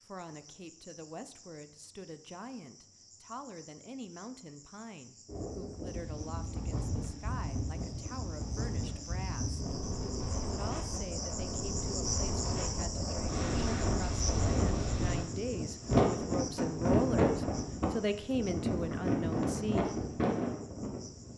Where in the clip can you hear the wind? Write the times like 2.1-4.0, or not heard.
5.2-21.3.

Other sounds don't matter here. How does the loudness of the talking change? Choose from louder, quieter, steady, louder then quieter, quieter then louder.
louder.